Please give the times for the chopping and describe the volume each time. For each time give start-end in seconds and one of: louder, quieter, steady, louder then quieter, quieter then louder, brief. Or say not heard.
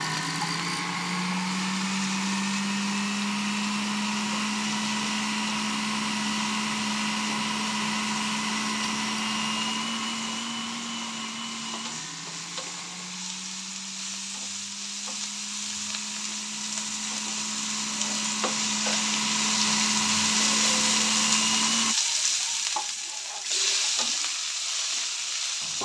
not heard.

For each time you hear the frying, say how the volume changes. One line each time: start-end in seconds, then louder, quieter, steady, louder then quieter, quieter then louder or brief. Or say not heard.
0.0-25.8 louder.